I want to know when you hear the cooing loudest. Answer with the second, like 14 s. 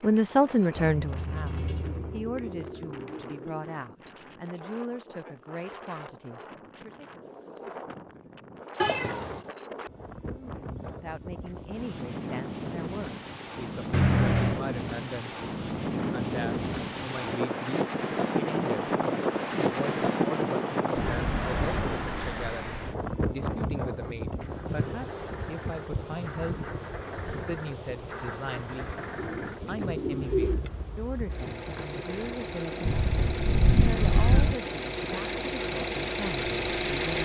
30 s.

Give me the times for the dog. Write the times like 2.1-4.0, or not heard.
not heard.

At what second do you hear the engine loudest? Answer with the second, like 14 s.
37 s.